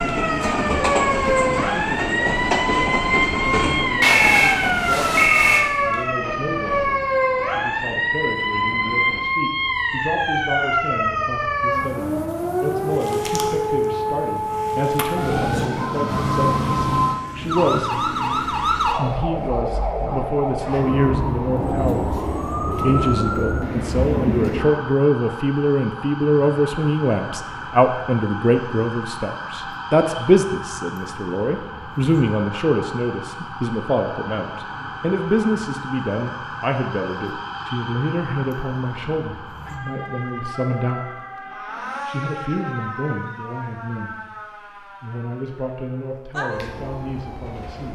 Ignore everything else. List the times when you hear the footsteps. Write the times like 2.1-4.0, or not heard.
not heard.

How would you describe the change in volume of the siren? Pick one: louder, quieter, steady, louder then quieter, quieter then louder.
quieter.